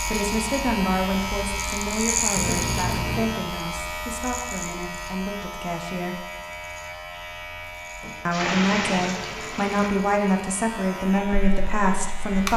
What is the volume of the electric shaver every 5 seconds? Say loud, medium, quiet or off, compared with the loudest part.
loud, medium, medium.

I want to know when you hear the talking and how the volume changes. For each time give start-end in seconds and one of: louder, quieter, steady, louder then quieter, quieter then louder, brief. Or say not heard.
0.1-6.3 quieter
8.2-12.5 steady.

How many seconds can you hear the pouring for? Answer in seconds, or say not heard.
3 s.